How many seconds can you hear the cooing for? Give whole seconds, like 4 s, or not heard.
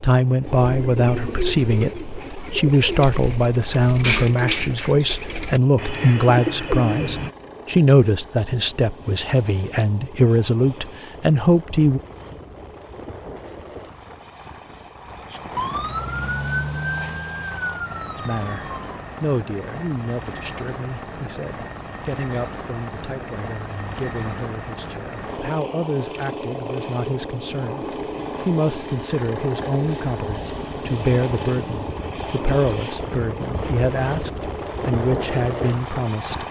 7 s.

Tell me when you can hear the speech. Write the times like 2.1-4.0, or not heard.
0.0-12.0, 18.1-36.4.